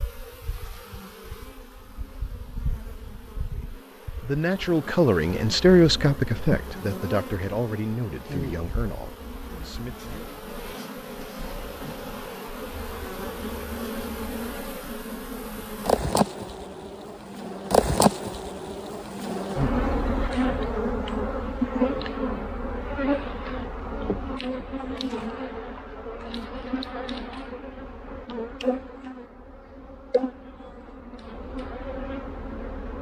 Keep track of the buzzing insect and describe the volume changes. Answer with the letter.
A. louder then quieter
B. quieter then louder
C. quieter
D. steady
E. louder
A.